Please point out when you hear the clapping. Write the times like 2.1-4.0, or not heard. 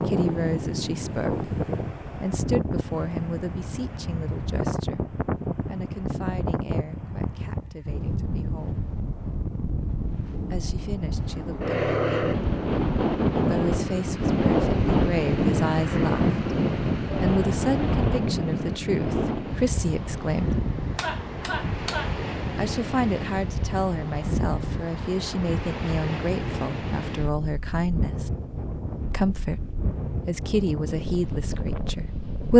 20.5-22.2.